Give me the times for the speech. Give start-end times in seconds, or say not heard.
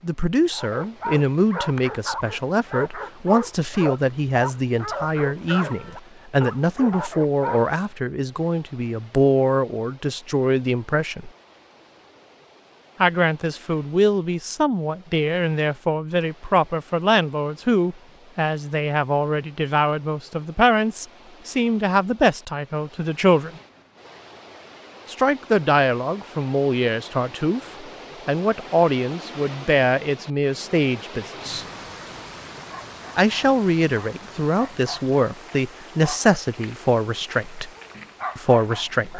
0.0-11.3, 13.0-23.5, 25.1-31.6, 33.1-37.7, 38.4-39.1.